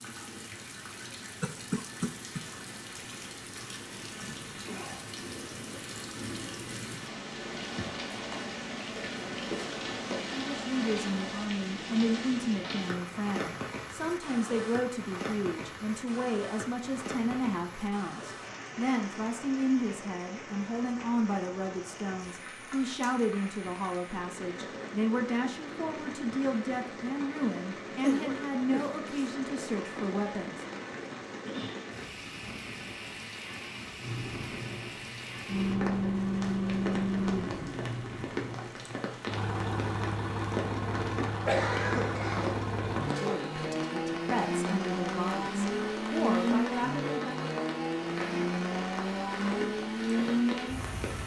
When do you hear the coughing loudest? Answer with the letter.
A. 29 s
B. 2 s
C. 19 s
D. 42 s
D.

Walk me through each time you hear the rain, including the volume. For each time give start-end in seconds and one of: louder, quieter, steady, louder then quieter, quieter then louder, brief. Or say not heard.
0.0-51.2 steady.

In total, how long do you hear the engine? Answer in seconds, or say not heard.
17 s.